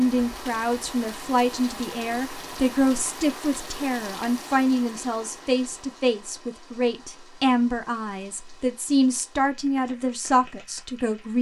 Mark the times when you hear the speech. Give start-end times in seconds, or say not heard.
0.0-11.3.